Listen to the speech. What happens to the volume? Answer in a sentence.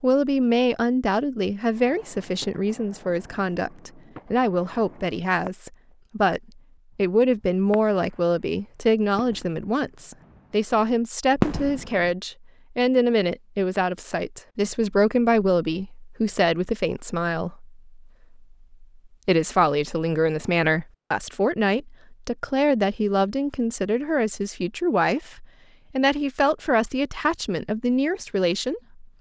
The volume of the speech stays about the same.